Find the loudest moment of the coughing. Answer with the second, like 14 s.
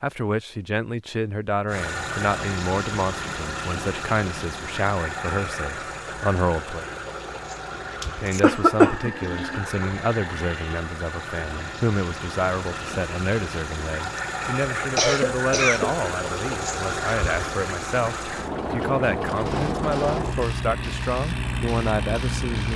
9 s.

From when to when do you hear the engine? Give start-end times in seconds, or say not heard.
1.6-22.7.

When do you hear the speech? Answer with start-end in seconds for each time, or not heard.
0.0-6.8, 8.2-22.7.